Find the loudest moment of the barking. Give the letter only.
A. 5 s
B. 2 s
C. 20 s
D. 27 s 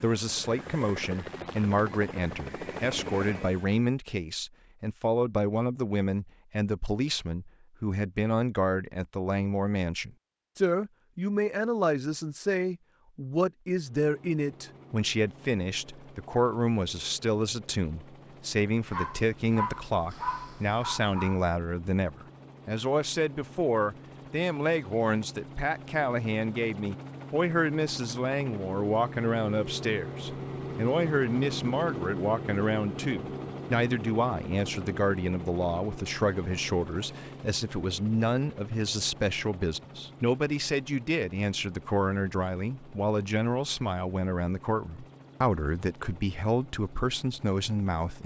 C.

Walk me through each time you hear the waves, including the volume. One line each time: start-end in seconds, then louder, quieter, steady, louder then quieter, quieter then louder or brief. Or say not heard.
not heard.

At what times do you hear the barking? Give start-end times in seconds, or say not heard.
18.9-21.4.